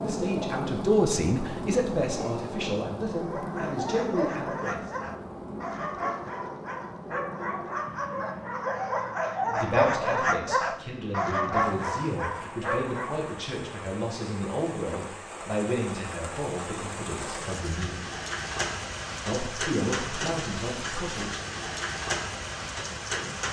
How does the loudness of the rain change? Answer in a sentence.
The loudness of the rain goes down, then up.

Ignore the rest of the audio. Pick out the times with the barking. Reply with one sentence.
The barking can be heard from 3.0 to 13.3 s.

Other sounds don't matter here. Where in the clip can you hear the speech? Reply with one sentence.
You can hear the speech from 0.0 to 4.9 s, from 9.6 to 18.0 s and from 19.2 to 21.4 s.